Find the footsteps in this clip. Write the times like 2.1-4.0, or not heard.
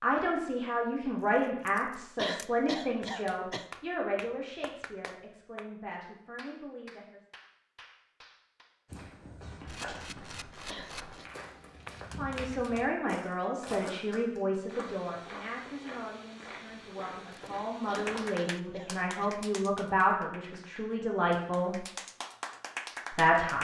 8.8-18.4.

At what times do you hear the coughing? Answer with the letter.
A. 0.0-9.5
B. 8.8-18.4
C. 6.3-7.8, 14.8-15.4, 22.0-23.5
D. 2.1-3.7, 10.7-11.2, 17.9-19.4
D.